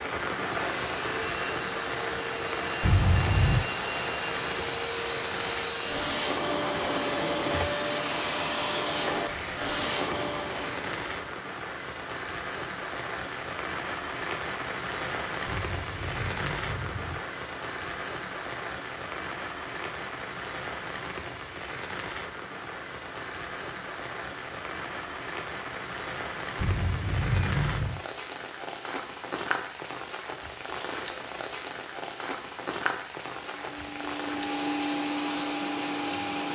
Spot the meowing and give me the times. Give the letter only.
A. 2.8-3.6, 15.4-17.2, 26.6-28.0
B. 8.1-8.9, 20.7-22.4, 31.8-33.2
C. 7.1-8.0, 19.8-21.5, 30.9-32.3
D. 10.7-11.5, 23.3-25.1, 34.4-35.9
A.